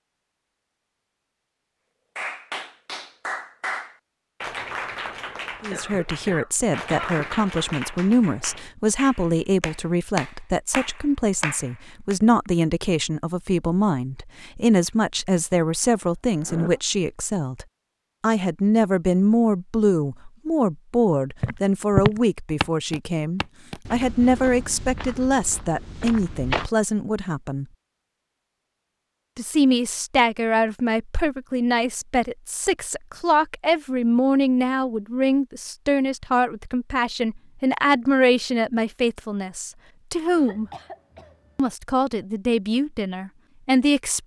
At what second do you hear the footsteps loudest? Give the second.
22 s.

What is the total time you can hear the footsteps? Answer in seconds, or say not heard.
5 s.